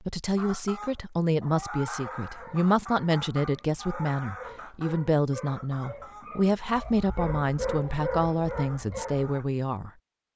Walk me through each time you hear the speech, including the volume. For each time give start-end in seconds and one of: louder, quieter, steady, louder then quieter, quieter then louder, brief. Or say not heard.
0.1-9.9 steady.